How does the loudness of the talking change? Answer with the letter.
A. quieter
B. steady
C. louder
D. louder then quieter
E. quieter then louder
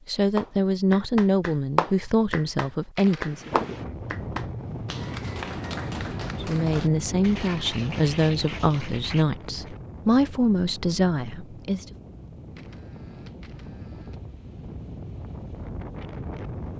B.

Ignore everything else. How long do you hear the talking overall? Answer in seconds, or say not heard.
9 s.